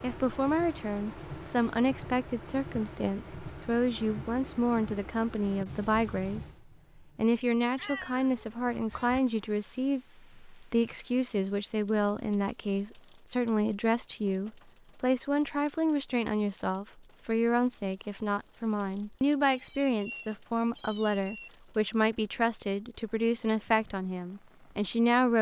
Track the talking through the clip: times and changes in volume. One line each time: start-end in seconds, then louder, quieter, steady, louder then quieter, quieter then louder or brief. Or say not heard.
0.0-6.5 steady
7.2-25.3 steady.